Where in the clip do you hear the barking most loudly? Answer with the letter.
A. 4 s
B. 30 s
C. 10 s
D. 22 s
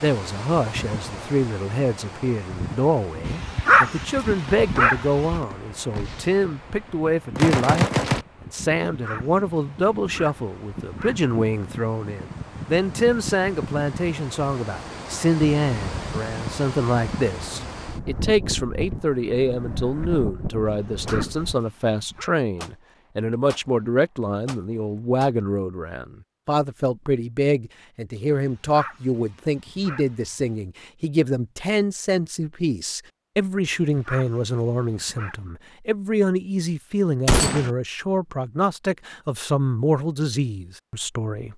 A.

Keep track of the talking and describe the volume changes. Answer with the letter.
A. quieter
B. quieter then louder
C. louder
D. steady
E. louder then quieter
D.